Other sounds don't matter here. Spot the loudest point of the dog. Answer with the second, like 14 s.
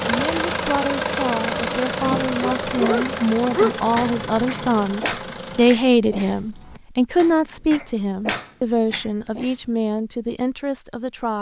4 s.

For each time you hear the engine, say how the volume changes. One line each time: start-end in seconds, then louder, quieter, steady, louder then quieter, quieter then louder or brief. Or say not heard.
0.0-5.8 quieter.